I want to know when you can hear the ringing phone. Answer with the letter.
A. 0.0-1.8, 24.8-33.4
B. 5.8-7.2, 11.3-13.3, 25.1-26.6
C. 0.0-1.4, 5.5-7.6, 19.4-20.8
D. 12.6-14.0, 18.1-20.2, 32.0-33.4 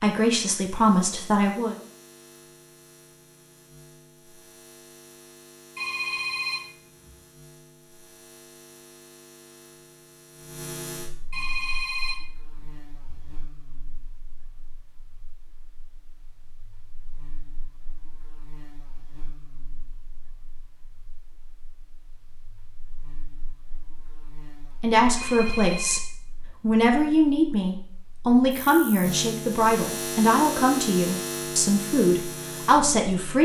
B.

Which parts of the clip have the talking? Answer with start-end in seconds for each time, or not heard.
0.0-1.8, 24.8-33.4.